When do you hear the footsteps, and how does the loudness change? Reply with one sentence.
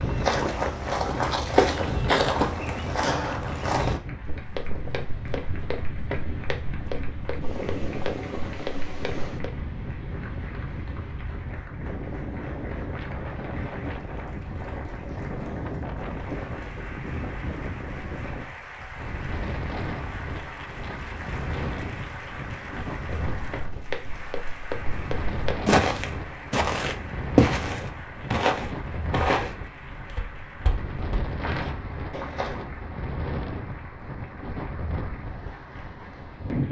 You can hear the footsteps from 0.0 to 9.7 s, getting quieter; and from 23.1 to 32.6 s, getting louder then quieter.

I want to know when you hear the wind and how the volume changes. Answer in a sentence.
The wind can be heard from 0.0 to 36.6 s, at a steady volume.